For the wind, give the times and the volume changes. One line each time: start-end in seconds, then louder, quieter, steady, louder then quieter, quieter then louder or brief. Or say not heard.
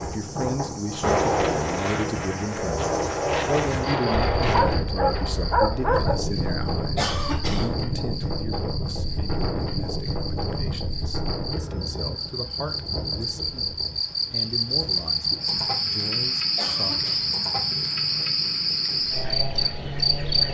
0.0-20.4 quieter.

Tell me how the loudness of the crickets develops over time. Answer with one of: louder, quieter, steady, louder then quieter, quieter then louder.
louder.